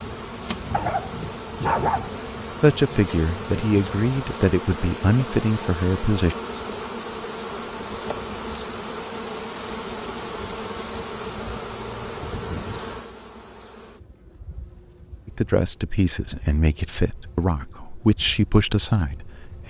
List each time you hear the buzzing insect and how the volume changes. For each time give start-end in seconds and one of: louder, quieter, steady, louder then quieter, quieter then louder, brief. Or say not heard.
0.0-19.6 quieter.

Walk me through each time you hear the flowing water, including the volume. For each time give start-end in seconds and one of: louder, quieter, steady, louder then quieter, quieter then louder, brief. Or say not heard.
not heard.